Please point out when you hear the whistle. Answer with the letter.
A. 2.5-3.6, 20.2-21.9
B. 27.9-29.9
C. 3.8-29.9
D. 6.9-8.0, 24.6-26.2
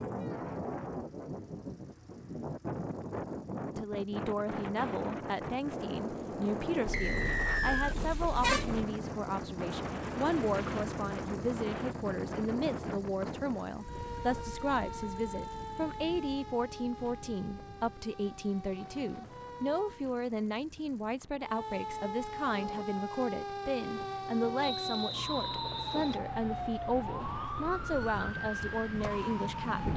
D.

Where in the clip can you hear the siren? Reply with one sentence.
You can hear the siren from 13.8 to 20.1 s and from 21.4 to 29.9 s.